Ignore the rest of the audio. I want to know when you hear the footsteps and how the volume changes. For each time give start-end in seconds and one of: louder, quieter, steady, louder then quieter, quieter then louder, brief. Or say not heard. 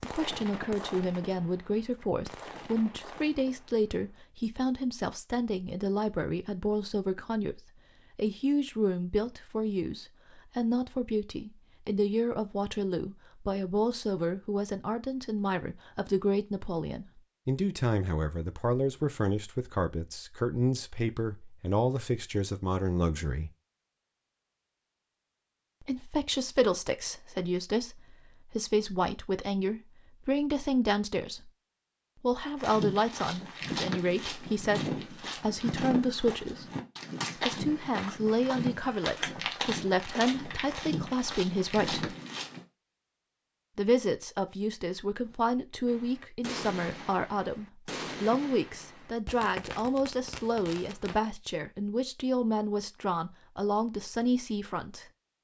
32.5-42.6 steady.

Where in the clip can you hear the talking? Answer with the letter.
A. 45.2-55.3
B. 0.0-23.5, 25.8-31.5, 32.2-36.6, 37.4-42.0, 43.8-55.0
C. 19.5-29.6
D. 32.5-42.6
B.